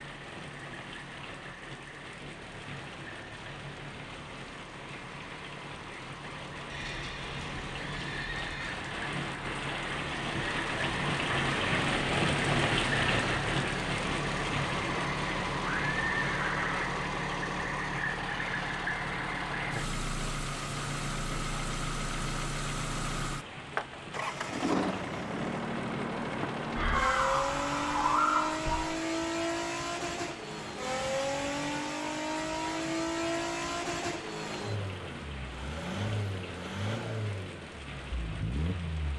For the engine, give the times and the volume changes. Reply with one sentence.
The engine can be heard from 0.0 to 39.1 s, getting louder.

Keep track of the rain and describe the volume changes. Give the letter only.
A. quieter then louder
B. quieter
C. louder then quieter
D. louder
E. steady
C.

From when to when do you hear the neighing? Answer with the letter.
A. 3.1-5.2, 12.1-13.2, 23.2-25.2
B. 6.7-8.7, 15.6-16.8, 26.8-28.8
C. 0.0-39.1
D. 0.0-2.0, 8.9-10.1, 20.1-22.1
B.